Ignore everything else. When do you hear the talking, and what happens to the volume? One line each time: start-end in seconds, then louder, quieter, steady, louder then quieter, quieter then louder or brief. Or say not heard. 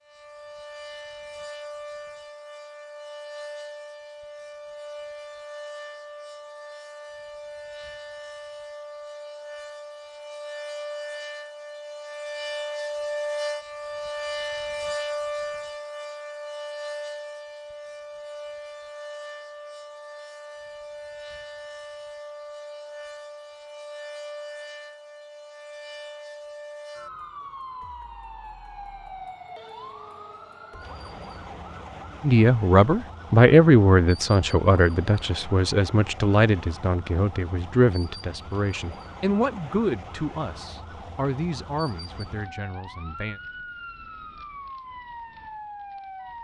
32.2-43.4 quieter.